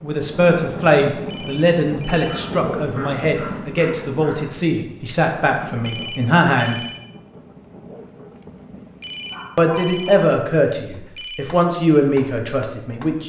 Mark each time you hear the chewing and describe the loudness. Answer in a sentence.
The chewing can't be heard in this clip.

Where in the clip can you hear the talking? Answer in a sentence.
The talking can be heard from 0.0 to 6.8 s and from 9.6 to 13.2 s.